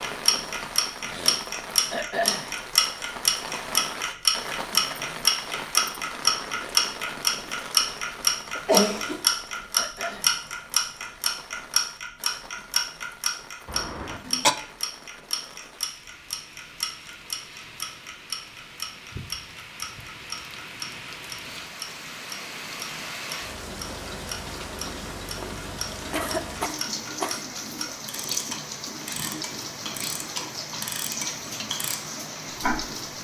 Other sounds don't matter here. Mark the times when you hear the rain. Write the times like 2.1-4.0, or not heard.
0.0-33.1.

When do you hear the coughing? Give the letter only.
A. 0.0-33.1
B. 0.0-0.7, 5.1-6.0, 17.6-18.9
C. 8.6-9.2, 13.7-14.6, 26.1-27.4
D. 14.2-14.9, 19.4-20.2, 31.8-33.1
C.